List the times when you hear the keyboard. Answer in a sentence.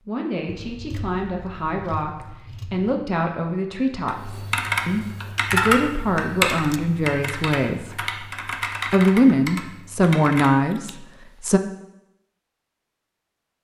The keyboard can be heard from 4.0 to 10.6 s.